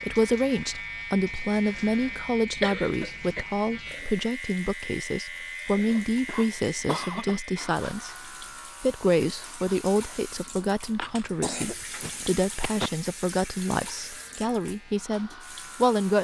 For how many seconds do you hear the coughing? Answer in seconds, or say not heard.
5 s.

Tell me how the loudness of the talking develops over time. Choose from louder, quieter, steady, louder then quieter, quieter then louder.
steady.